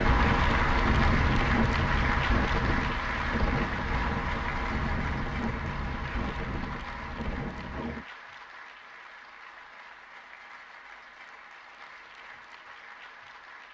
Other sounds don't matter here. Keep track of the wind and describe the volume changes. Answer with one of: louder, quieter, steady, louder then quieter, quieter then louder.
quieter.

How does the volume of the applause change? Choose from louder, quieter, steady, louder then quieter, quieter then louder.
quieter.